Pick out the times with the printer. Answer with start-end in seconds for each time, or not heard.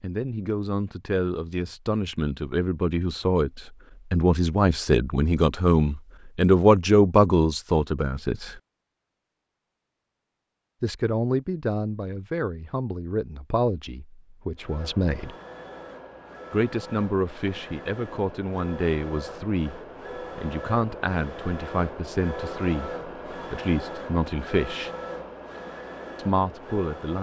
14.6-27.1.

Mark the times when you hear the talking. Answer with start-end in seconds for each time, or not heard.
0.0-8.6, 10.8-15.3, 16.5-24.9, 26.1-27.1.